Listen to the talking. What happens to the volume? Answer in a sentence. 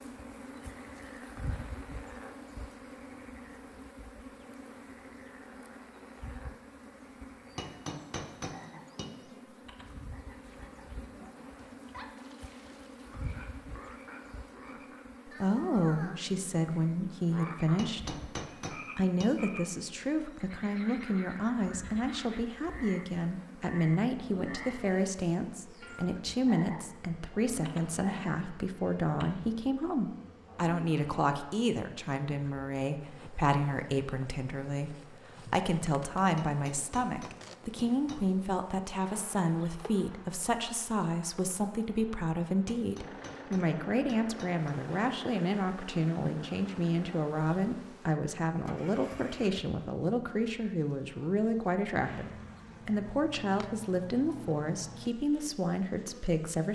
The loudness of the talking stays about the same.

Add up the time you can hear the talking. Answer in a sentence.
The talking can be heard for 42 seconds in total.